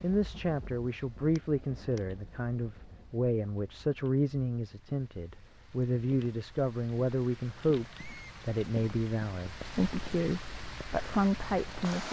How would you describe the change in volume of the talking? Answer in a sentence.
The volume of the talking stays about the same.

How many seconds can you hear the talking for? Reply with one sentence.
The talking can be heard for 12 seconds in total.